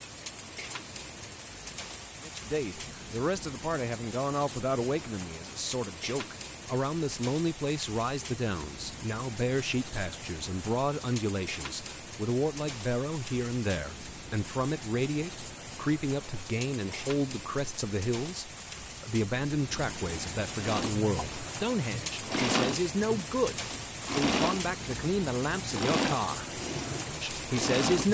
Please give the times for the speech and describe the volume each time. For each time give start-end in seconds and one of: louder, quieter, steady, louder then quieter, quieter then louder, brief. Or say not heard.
2.2-28.0 steady.